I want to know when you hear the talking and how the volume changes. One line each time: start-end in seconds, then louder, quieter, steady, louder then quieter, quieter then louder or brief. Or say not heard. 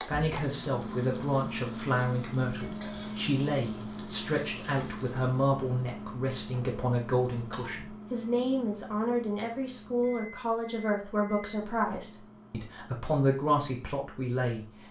0.0-14.8 steady.